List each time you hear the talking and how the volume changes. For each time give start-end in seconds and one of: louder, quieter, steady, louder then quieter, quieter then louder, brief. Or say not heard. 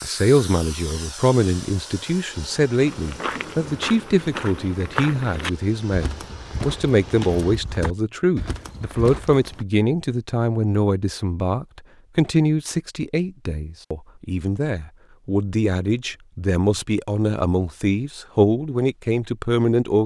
0.0-20.0 steady.